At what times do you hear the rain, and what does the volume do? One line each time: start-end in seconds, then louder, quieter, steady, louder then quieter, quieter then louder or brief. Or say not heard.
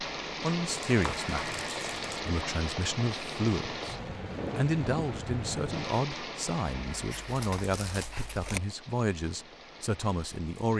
0.0-10.7 quieter.